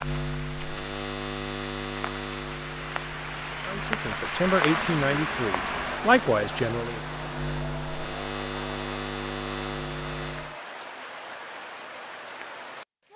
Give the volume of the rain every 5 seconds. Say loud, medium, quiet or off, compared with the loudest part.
loud, loud, medium.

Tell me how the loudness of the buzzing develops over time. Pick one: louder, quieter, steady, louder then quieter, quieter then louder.
quieter then louder.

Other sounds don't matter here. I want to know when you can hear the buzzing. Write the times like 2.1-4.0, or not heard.
0.0-10.6.